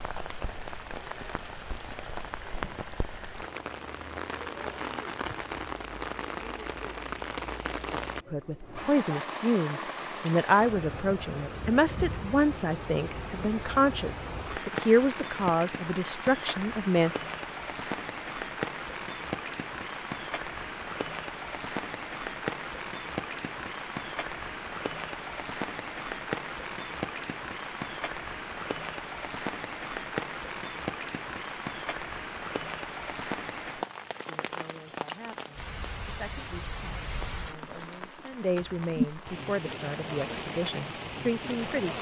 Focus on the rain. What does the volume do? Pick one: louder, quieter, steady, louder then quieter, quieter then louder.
steady.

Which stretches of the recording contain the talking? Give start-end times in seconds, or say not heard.
8.3-17.1, 34.2-41.9.